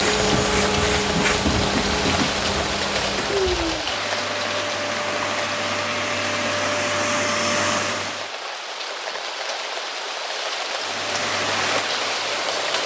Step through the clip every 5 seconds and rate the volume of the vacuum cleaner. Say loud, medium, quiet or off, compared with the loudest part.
loud, loud, medium.